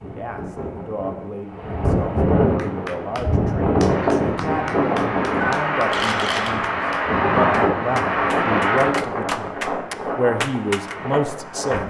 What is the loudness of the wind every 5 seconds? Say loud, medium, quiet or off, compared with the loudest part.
loud, loud, medium.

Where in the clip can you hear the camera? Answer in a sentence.
The camera can be heard from 5.4 to 6.5 s.